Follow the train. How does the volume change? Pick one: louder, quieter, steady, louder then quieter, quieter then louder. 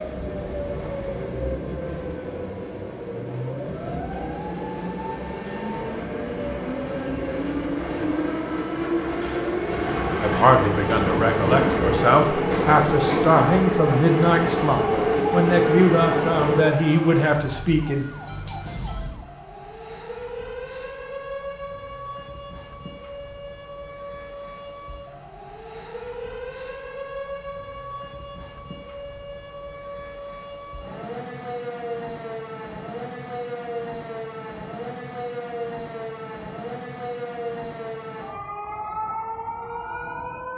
louder.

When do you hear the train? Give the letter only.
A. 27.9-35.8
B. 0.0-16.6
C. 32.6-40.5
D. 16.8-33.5
B.